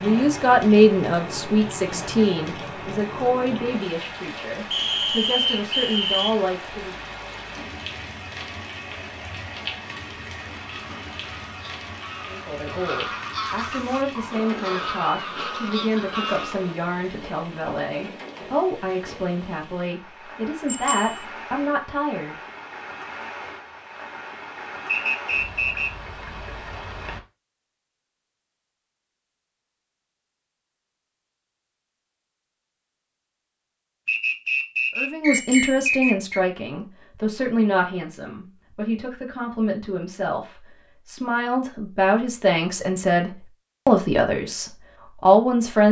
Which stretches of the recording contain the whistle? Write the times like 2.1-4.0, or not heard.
4.7-6.3, 24.9-26.1, 34.0-36.4.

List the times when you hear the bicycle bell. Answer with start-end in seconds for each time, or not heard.
20.6-21.2, 35.3-35.9.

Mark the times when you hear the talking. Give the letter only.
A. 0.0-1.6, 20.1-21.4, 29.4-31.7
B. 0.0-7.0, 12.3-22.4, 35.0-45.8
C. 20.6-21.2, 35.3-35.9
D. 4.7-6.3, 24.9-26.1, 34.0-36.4
B.